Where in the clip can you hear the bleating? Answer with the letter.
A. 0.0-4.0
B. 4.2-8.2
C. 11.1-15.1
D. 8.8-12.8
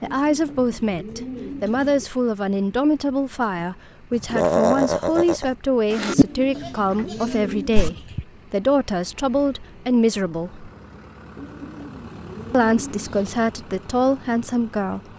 B.